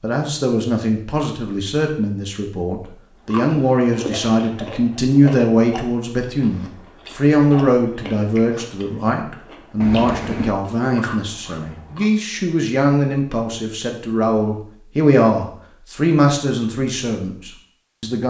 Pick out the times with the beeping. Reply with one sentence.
The beeping can be heard from 9.8 to 10.6 s.